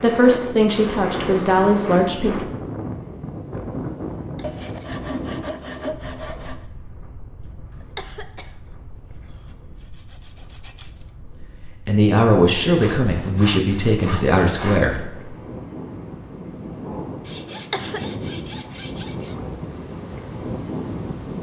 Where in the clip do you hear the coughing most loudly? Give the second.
18 s.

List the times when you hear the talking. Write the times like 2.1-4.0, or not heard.
0.0-2.5, 11.2-15.2.